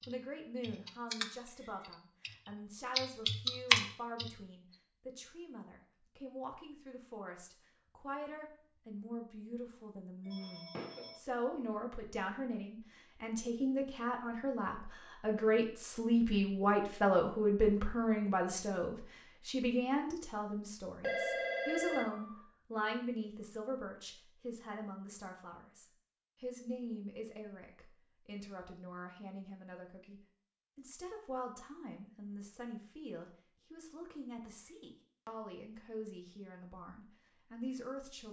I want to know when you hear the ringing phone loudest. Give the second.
21 s.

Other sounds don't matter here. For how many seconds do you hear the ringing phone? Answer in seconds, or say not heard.
3 s.